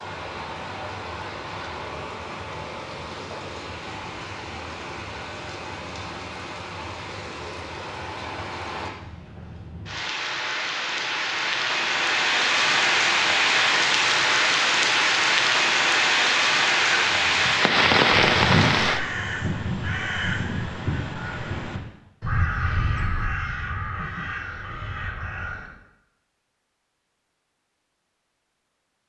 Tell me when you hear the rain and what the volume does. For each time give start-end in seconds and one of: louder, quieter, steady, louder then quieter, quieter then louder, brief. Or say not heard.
0.0-19.0 louder.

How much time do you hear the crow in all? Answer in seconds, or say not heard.
9 s.